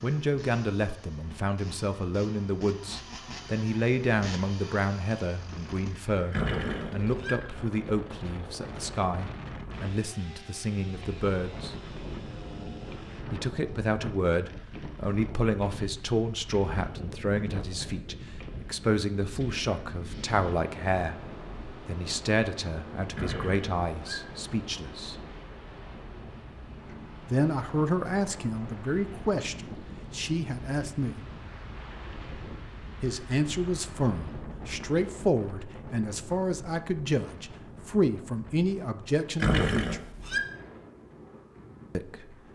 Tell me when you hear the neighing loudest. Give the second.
40 s.